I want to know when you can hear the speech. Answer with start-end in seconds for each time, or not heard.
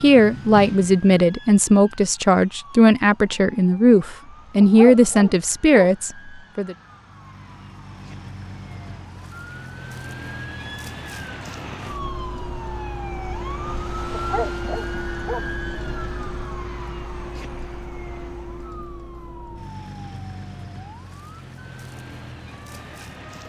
0.0-6.8.